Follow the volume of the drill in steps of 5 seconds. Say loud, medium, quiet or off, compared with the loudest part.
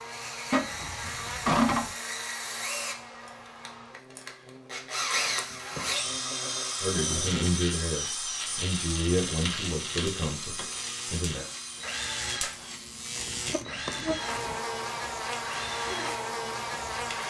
medium, loud, medium, medium.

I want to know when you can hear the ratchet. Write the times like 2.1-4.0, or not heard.
0.5-1.9, 5.2-6.2, 9.2-10.9, 13.2-14.6.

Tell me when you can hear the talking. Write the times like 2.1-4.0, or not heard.
6.8-11.4.